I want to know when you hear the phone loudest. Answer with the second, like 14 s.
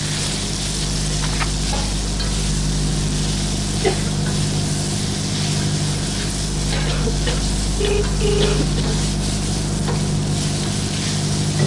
8 s.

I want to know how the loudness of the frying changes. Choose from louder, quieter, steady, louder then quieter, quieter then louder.
steady.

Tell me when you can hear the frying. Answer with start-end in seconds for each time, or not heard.
0.0-11.6.